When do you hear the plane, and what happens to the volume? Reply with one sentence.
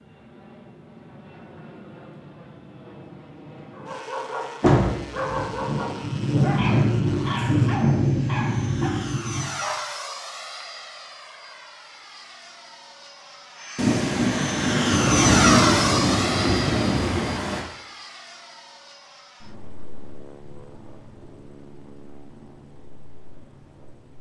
You can hear the plane from 0.0 to 24.1 s, getting louder then quieter.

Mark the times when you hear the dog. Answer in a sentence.
The dog can be heard from 3.7 to 9.9 s.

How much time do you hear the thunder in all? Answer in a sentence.
The thunder can be heard for 9 seconds in total.